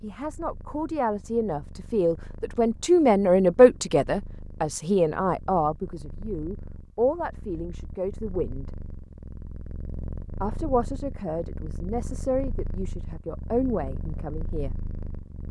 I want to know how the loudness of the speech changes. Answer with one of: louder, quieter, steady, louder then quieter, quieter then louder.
louder then quieter.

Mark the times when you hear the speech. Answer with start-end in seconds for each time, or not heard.
0.0-8.7, 10.4-14.8.